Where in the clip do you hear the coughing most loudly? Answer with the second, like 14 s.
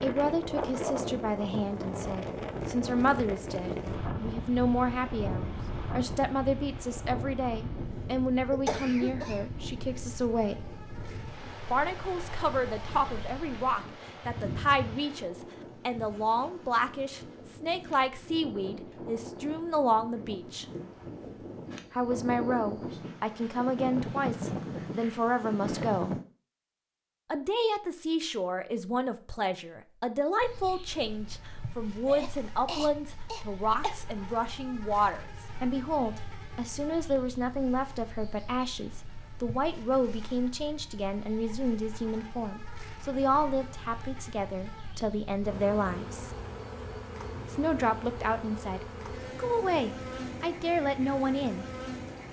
9 s.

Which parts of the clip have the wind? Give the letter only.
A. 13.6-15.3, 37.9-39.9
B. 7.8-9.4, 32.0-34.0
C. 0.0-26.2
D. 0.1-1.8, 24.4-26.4
C.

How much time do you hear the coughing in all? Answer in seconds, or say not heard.
4 s.